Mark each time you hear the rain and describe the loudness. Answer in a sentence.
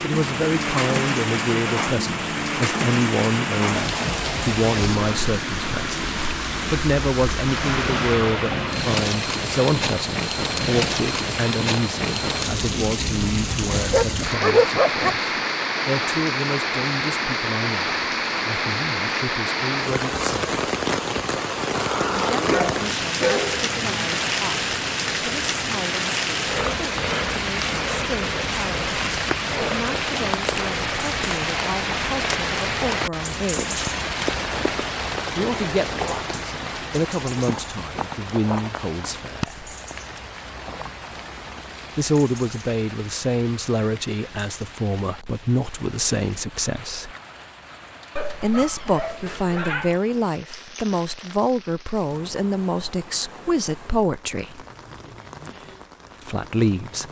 The rain can be heard from 0.0 to 57.0 s, getting quieter.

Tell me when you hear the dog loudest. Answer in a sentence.
The loudest moment of the dog is at 15 seconds.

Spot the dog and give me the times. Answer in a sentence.
The dog can be heard from 13.9 to 15.2 s, from 21.7 to 24.1 s and from 48.1 to 50.0 s.